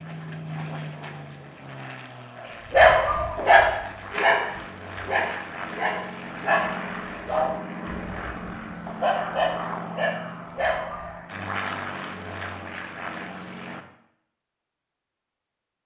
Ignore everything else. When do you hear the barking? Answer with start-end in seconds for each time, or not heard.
2.7-11.2.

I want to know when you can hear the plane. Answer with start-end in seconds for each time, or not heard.
0.0-13.8.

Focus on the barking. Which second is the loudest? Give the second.
3 s.